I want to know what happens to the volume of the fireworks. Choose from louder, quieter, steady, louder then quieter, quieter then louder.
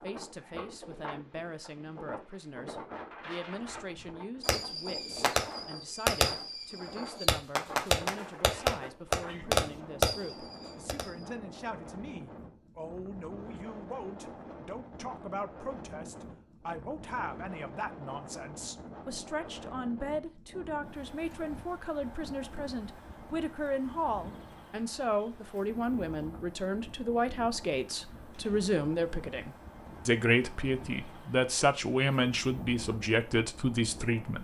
louder.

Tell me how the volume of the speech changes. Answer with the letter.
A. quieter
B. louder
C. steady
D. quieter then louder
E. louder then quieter
B.